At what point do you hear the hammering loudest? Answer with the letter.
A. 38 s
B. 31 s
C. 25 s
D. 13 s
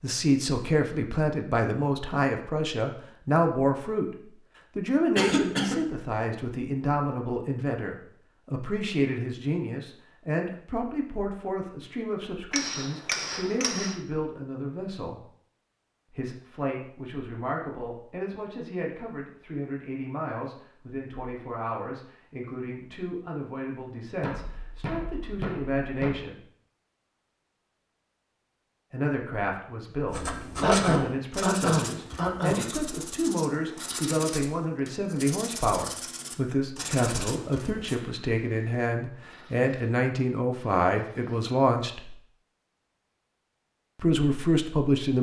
D.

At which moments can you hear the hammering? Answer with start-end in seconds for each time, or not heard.
12.5-14.0, 24.2-26.1.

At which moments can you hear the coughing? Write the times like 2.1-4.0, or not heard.
5.2-5.8, 30.6-32.7.